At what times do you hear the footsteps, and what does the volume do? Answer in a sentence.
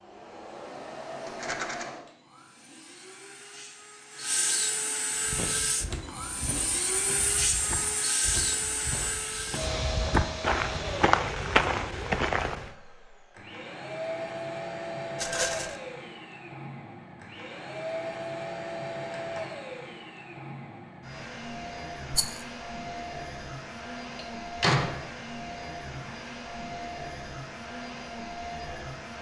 The footsteps can be heard from 5.2 to 12.7 s, getting louder.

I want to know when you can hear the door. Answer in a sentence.
You can hear the door from 24.1 to 24.9 s.